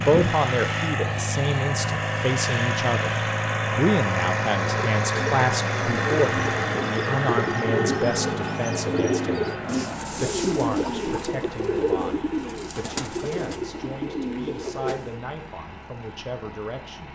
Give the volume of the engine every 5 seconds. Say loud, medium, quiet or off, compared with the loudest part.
loud, loud, quiet, quiet.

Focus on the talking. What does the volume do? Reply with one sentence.
The volume of the talking goes down.